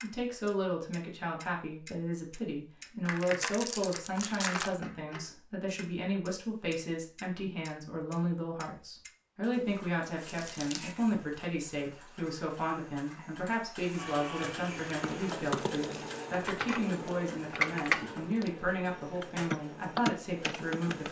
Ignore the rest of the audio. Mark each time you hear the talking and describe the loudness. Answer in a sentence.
You can hear the talking from 0.0 to 21.0 s, at a steady volume.